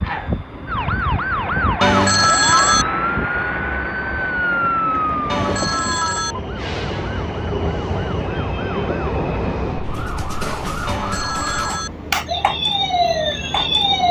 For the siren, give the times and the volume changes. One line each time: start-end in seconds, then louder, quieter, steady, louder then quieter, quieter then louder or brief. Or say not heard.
0.1-14.0 quieter then louder.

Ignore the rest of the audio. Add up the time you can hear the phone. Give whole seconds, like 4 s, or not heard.
3 s.